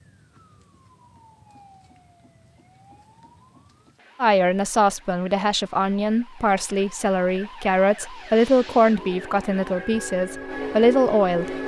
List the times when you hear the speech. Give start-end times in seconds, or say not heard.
4.2-11.6.